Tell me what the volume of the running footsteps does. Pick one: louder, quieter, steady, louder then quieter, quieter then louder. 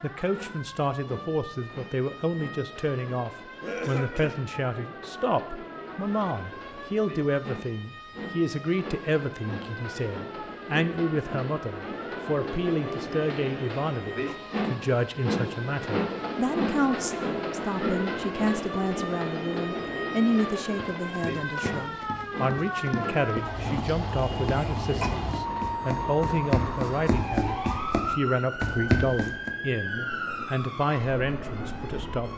louder.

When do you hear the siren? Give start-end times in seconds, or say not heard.
0.0-32.3.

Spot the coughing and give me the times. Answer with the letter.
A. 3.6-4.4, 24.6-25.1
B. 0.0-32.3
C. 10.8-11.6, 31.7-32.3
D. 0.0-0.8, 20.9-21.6
A.